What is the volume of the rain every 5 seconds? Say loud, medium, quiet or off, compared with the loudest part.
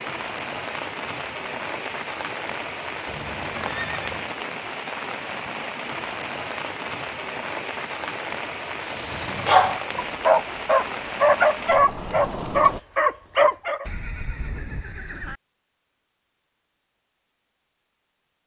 loud, loud, loud, off.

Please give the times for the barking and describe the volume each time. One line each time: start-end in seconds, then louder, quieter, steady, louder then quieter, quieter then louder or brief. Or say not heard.
8.8-13.8 steady.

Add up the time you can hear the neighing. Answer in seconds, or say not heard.
3 s.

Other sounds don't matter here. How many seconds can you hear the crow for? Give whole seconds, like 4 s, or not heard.
not heard.